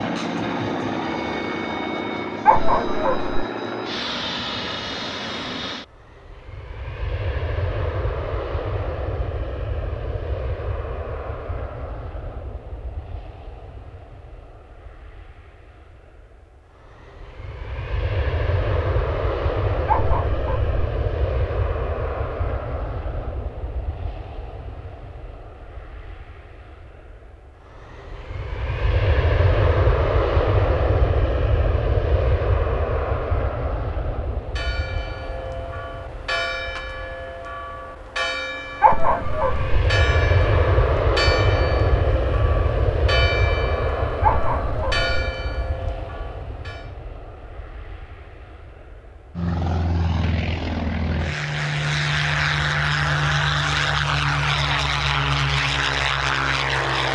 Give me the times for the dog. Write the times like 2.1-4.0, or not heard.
2.5-3.4, 19.9-20.8, 38.8-39.8, 44.2-45.1.